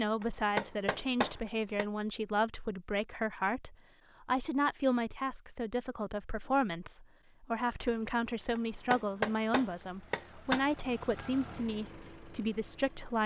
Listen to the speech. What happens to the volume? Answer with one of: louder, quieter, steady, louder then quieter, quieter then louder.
steady.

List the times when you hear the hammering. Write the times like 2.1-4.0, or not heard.
0.2-1.9, 8.6-10.7.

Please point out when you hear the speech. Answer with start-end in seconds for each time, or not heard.
0.0-13.2.